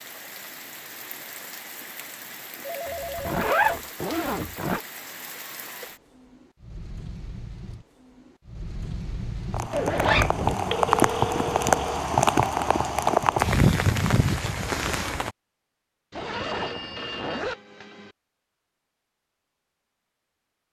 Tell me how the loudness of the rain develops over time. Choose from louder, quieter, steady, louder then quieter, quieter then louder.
louder.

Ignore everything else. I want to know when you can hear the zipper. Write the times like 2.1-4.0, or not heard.
3.2-4.8, 9.7-10.6, 16.1-17.6.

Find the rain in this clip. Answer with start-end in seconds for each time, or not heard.
0.0-15.3.